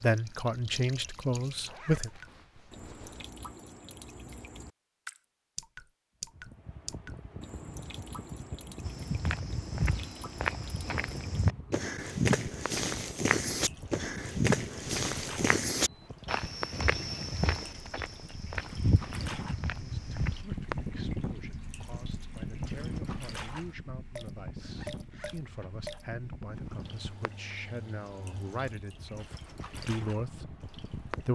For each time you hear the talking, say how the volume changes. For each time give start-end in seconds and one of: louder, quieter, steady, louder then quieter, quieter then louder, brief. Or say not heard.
0.0-2.1 brief
19.8-31.3 louder.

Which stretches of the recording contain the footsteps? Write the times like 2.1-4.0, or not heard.
8.8-20.4.